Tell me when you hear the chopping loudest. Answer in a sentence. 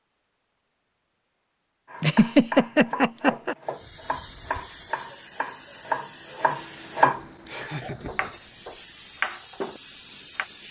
The loudest moment of the chopping is at 7 seconds.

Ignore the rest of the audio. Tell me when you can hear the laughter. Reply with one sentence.
The laughter can be heard from 2.0 to 3.5 s and from 7.2 to 8.2 s.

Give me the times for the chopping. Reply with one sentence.
The chopping can be heard from 1.9 to 10.5 s.